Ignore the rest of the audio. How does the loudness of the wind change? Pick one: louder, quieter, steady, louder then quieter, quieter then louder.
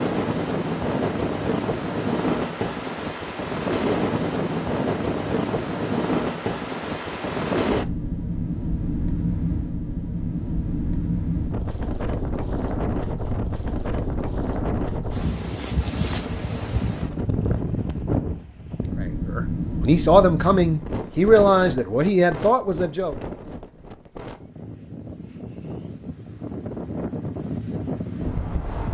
quieter.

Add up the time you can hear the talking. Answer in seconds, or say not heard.
4 s.